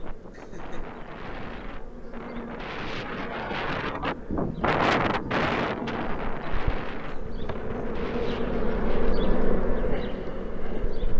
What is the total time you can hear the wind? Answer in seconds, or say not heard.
9 s.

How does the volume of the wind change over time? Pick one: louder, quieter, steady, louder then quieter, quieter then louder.
louder then quieter.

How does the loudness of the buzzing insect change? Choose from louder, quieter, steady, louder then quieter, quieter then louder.
louder.